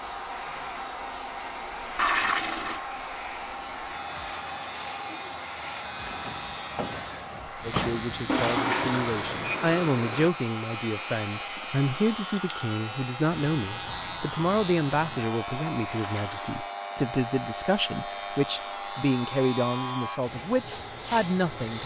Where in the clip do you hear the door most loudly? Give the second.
8 s.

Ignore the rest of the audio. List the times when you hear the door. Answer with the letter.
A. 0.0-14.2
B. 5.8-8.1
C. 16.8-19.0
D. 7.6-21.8
B.